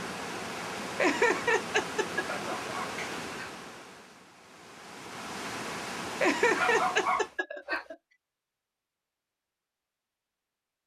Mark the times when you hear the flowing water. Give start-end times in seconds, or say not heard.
0.0-7.3.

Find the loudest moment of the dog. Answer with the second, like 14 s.
7 s.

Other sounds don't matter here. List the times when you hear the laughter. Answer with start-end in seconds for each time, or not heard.
0.9-3.1, 6.2-8.0.